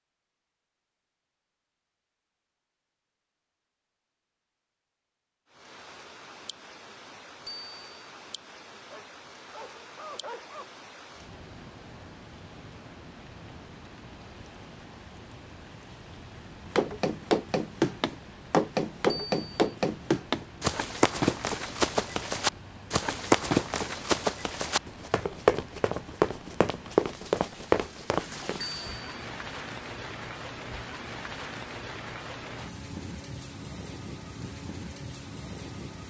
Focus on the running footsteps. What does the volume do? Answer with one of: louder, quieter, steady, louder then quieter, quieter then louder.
steady.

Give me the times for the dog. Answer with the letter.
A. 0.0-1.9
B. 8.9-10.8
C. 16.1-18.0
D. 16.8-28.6
B.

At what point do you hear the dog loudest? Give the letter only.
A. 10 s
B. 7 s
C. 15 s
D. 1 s
A.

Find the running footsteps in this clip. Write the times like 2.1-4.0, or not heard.
16.8-28.6.